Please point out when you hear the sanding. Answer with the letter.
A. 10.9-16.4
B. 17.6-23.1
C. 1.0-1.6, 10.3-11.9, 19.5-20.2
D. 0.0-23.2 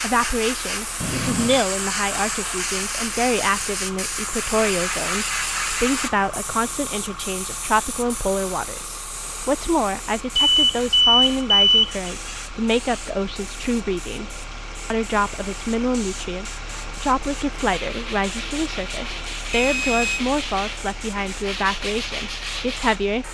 B.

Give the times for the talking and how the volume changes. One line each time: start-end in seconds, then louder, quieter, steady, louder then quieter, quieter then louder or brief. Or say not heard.
0.0-23.2 steady.